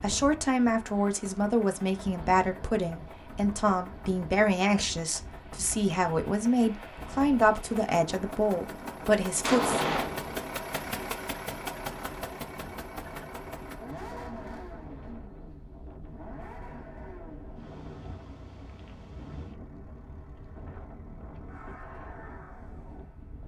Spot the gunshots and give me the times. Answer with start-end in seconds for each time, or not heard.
9.4-10.4.